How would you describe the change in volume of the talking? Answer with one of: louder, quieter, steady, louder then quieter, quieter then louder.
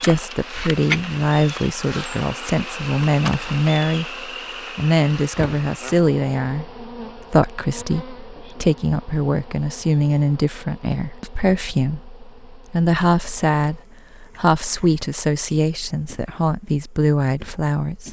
steady.